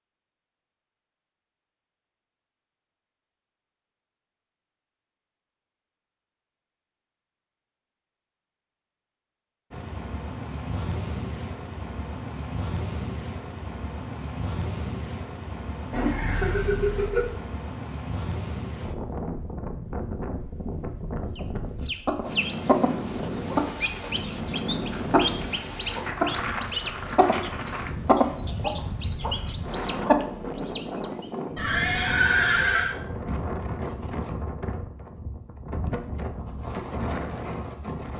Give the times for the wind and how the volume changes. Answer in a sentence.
The wind can be heard from 9.7 to 38.1 s, at a steady volume.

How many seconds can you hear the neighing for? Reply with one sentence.
You can hear the neighing for 3 seconds altogether.